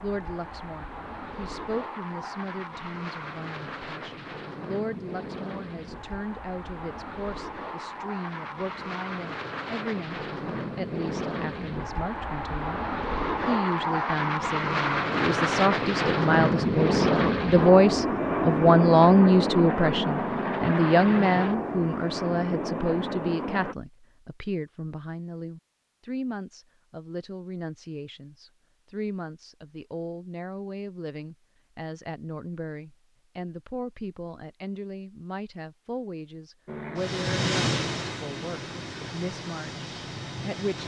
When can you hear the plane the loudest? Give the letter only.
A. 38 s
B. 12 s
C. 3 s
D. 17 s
D.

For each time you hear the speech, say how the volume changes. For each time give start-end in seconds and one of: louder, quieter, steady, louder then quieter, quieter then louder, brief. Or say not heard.
0.0-40.8 louder then quieter.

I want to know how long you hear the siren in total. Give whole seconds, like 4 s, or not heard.
not heard.